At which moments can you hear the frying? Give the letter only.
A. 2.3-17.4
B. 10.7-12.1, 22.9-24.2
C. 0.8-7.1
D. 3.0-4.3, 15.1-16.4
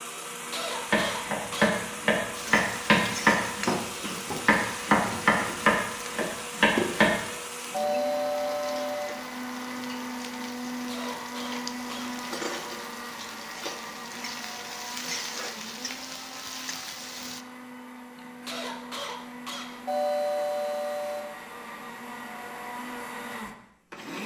A.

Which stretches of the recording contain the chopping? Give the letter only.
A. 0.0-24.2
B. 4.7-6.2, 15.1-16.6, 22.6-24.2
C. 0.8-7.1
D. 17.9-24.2
C.